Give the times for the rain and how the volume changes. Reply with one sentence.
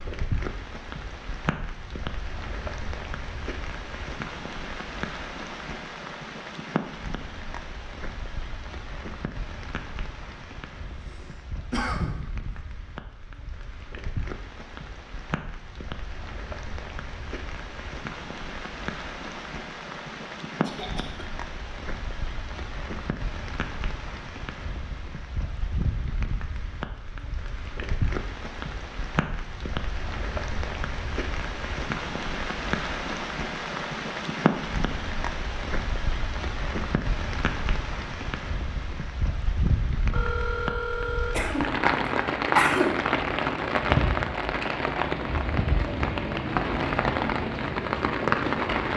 You can hear the rain from 0.0 to 48.9 s, getting louder.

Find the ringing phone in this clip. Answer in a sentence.
The ringing phone can be heard from 40.1 to 41.4 s.